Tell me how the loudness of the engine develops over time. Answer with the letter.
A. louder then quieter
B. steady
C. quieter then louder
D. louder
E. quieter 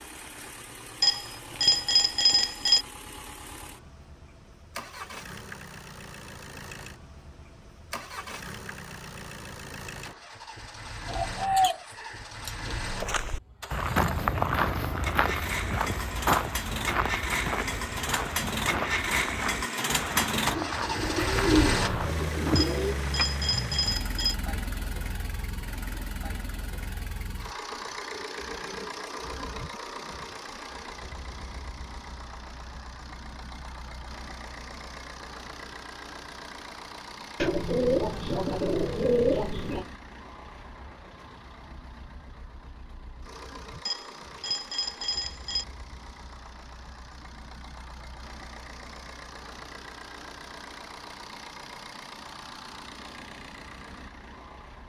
A.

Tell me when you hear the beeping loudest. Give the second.
2 s.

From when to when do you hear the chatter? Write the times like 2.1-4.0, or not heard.
not heard.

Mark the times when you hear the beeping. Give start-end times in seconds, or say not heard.
1.0-2.9, 22.6-24.4, 43.9-45.6.